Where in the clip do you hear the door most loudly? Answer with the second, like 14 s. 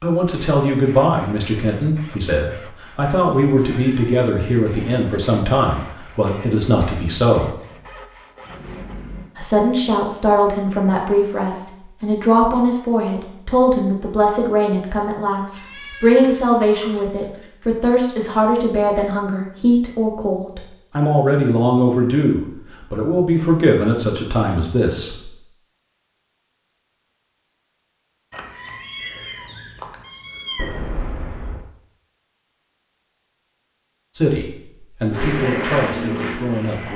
31 s.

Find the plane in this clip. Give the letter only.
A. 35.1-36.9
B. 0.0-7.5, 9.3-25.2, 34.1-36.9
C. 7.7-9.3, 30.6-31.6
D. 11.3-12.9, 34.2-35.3
A.